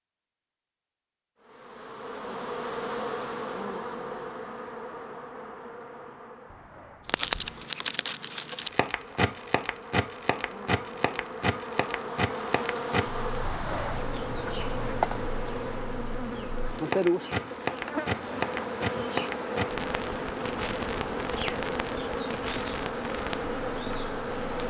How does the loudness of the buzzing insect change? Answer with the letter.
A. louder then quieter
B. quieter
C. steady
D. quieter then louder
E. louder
D.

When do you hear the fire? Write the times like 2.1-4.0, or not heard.
7.0-24.5.